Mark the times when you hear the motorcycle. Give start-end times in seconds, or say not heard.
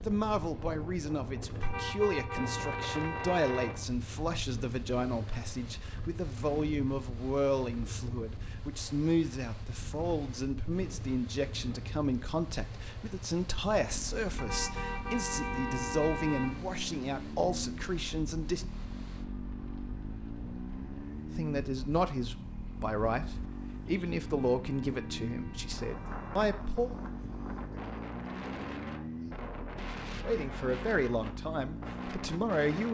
0.0-32.8.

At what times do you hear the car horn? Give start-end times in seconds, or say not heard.
1.6-3.7, 14.3-16.6, 24.2-26.4.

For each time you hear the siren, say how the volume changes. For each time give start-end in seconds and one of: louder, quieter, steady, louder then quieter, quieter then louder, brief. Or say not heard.
not heard.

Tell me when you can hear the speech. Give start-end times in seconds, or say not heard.
0.0-18.6, 21.4-26.9, 30.2-32.8.